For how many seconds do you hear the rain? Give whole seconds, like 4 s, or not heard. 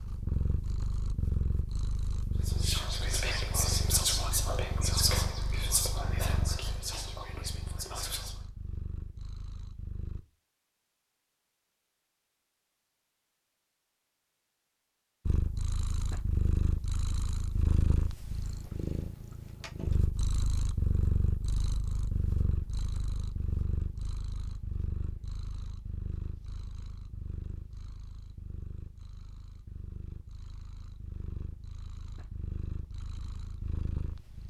not heard.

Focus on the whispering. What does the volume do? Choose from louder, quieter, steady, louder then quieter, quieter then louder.
quieter.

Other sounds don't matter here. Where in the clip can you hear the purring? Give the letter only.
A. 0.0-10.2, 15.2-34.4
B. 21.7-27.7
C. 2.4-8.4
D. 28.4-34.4
A.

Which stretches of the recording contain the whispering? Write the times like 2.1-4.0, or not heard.
2.4-8.4.